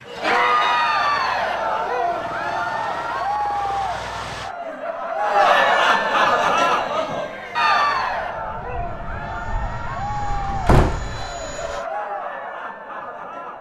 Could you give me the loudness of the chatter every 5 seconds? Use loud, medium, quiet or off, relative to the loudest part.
loud, loud, medium.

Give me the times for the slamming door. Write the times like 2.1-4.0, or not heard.
10.3-11.3.